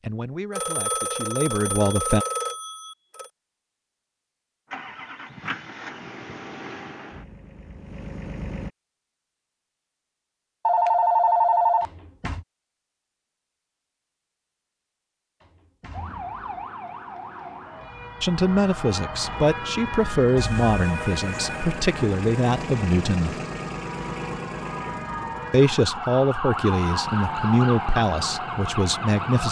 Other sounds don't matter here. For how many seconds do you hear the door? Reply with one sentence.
The door can be heard for 2 seconds in total.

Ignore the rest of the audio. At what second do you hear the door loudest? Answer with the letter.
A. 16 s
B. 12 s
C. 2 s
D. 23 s
B.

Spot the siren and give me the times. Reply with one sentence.
You can hear the siren from 15.9 to 29.4 s.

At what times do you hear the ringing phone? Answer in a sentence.
You can hear the ringing phone from 0.5 to 3.3 s, from 10.7 to 11.8 s and from 20.4 to 21.8 s.